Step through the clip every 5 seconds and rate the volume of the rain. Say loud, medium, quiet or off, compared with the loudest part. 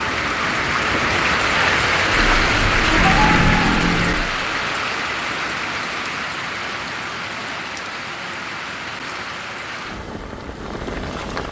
loud, medium, medium.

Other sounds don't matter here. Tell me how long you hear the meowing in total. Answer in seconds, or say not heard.
2 s.